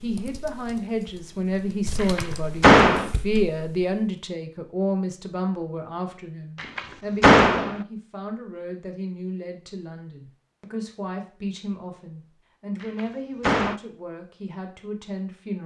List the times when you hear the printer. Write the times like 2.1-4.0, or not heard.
not heard.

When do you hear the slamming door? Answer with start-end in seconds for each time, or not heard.
2.0-3.1, 6.6-7.8, 12.8-13.8.